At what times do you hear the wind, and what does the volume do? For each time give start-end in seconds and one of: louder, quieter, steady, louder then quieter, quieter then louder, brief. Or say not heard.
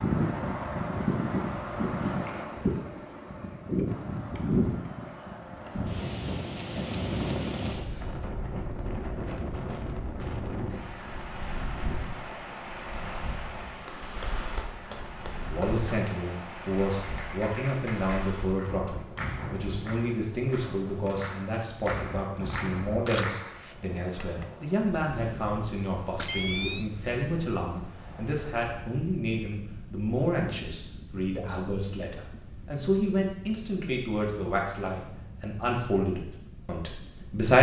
0.0-37.5 quieter.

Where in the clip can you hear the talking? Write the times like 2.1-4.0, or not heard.
15.4-37.5.